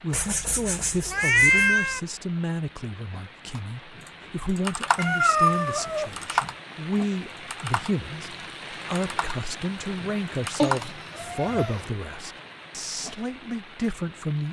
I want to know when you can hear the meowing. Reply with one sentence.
The meowing can be heard from 0.1 to 2.0 s, from 5.0 to 6.1 s and from 10.6 to 11.8 s.